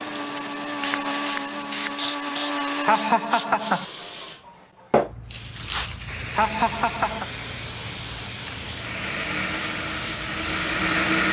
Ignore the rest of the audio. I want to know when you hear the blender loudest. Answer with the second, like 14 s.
11 s.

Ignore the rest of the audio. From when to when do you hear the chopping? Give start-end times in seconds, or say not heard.
not heard.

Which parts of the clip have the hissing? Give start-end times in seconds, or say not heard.
0.0-11.2.